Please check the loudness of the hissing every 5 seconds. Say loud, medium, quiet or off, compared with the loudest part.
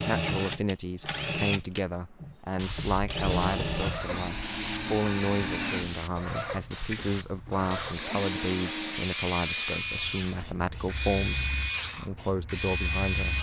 loud, loud, medium.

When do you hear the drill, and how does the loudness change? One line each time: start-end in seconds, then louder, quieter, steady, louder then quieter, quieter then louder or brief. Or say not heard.
0.0-13.3 steady.